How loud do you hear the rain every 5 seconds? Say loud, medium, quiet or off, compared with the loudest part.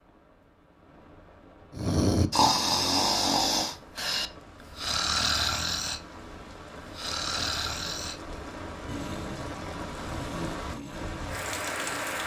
quiet, medium, loud.